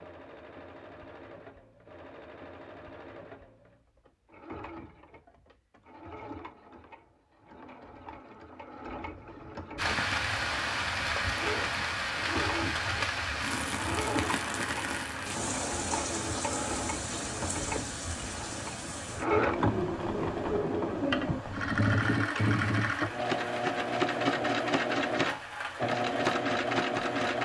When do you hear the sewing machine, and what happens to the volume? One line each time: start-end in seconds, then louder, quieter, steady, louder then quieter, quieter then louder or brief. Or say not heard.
0.0-27.3 louder.